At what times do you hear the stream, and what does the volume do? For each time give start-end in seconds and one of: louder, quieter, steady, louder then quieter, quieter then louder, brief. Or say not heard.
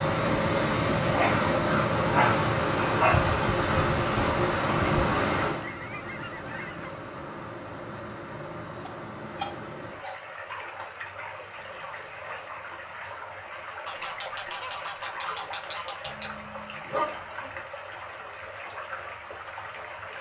0.0-20.1 quieter.